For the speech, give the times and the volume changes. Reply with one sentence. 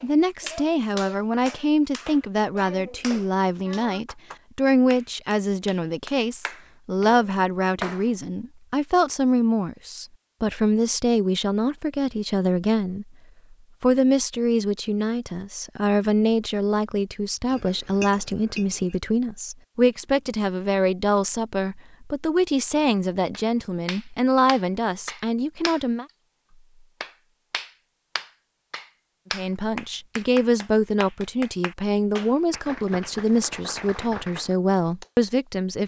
The speech can be heard from 0.0 to 13.1 s, at a steady volume; from 13.8 to 26.1 s, at a steady volume; and from 29.3 to 35.8 s, at a steady volume.